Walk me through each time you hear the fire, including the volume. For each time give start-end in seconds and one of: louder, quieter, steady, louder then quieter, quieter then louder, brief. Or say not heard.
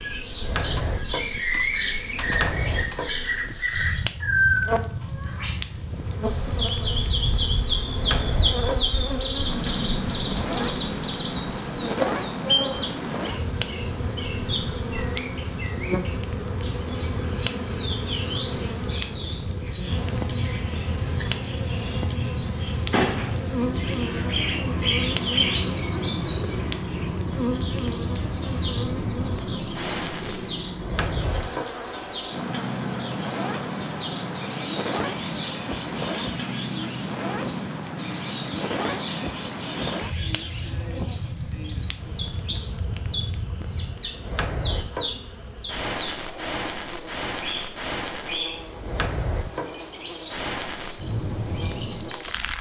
0.2-52.5 steady.